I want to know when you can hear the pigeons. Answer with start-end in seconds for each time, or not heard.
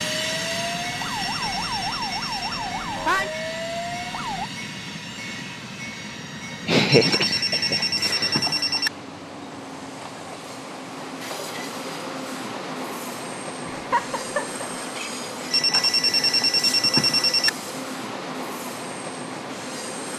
not heard.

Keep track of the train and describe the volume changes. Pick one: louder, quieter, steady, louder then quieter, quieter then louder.
steady.